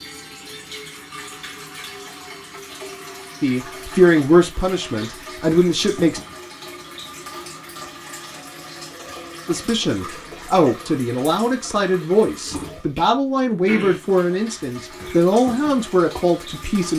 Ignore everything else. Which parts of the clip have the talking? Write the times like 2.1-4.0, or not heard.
3.4-6.2, 9.4-16.9.